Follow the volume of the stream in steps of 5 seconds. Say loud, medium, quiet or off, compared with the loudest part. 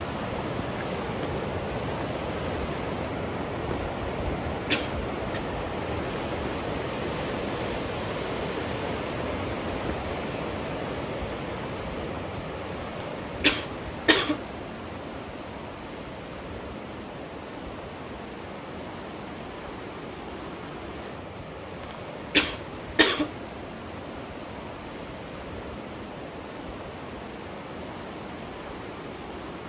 loud, loud, loud, medium, medium, medium.